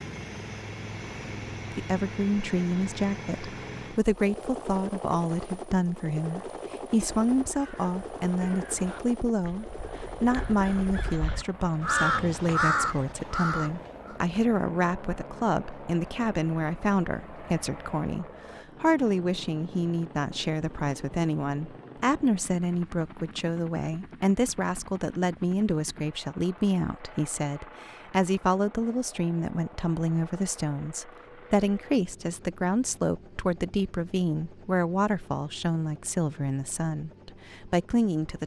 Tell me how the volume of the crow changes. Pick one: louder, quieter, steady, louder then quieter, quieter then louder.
louder.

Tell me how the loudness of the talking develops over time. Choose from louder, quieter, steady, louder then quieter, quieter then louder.
steady.